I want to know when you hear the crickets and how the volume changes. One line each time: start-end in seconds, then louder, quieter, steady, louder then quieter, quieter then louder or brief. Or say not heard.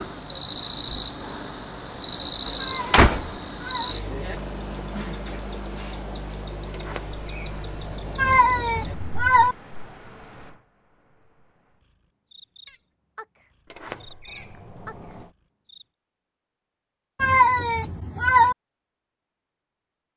0.0-15.8 quieter.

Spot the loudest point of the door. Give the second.
3 s.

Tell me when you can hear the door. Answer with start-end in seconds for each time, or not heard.
2.5-3.4, 6.7-8.6, 13.7-15.3.